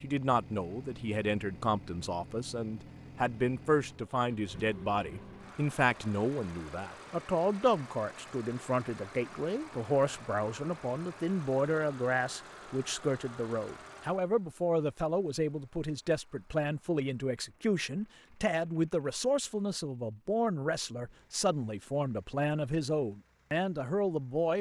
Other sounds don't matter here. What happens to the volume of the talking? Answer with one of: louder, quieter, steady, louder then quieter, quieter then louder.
steady.